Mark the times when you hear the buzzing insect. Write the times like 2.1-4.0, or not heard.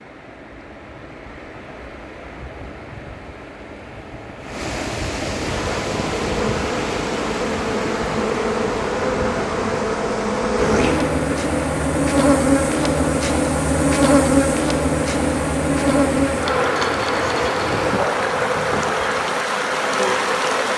5.3-20.7.